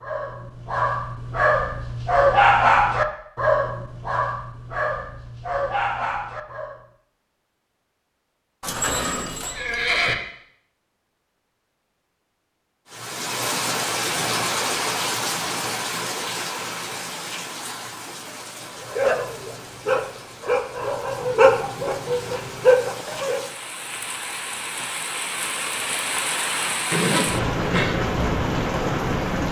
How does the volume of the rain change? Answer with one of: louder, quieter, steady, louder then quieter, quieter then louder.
quieter then louder.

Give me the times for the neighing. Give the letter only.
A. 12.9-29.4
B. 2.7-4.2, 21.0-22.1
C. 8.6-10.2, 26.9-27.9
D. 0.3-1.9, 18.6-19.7
C.